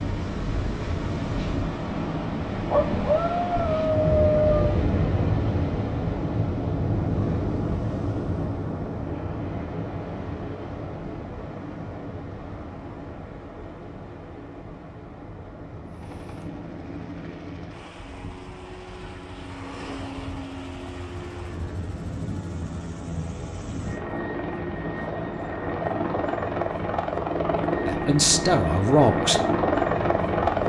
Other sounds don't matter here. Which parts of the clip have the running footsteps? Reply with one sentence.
The running footsteps can't be heard in this clip.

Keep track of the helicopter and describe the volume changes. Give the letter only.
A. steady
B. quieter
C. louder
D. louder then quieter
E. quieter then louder
C.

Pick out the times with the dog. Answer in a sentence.
You can hear the dog from 2.7 to 4.8 s.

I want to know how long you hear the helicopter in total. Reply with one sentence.
The helicopter can be heard for 15 seconds in total.